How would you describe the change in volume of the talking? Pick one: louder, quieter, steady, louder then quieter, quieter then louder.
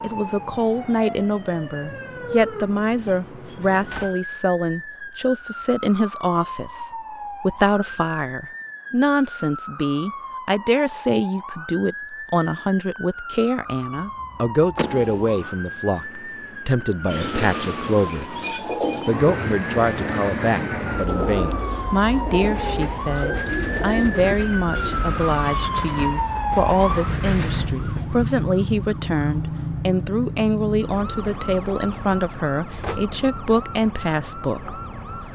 steady.